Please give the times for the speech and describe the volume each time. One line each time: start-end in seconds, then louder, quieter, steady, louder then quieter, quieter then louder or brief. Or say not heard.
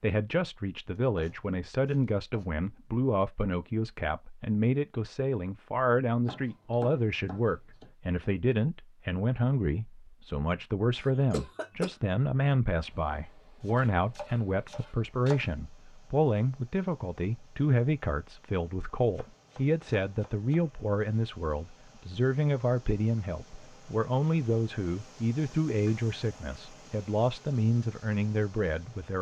0.0-29.1 steady.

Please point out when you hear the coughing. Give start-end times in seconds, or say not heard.
11.0-11.9.